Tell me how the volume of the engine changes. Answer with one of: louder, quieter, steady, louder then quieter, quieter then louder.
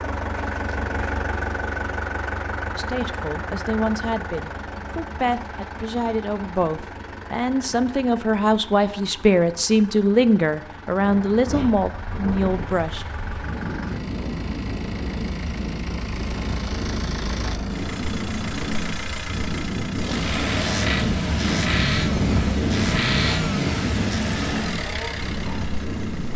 quieter then louder.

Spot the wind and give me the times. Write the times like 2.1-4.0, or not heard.
10.9-26.3.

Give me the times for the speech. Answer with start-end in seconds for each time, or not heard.
2.8-13.1.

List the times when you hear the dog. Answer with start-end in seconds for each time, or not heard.
not heard.